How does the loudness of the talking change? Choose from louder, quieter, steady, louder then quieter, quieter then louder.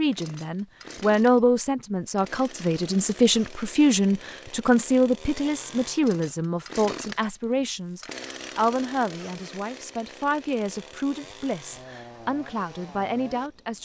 quieter.